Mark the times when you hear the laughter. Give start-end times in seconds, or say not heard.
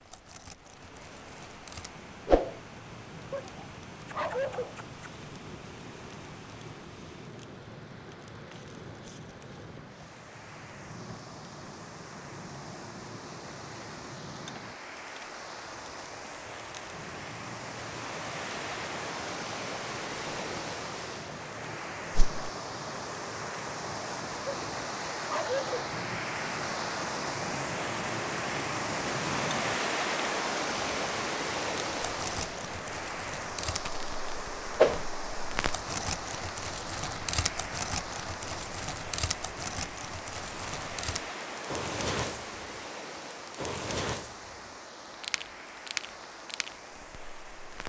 not heard.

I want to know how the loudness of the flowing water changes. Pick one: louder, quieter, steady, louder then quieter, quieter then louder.
louder then quieter.